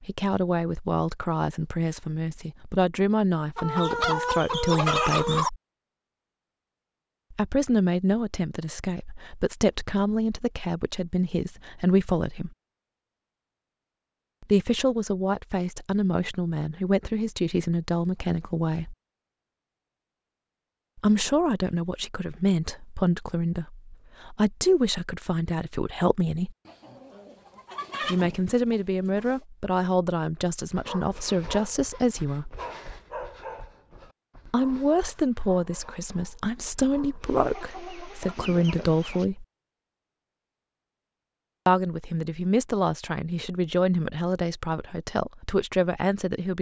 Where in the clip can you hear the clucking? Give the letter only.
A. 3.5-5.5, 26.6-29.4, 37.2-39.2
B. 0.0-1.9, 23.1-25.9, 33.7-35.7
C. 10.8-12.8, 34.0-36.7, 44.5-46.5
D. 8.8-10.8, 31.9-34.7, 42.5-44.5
A.